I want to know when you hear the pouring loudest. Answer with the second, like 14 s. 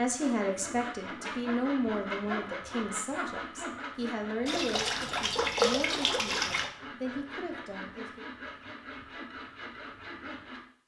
6 s.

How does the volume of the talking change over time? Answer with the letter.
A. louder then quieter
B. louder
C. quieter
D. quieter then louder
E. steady
C.